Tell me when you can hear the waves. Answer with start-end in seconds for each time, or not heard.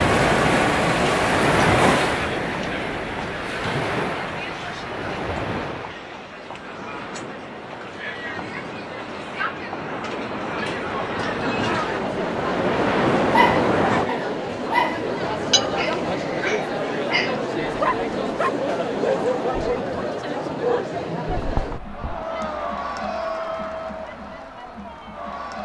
0.0-14.1.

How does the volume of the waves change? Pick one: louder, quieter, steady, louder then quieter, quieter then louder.
quieter then louder.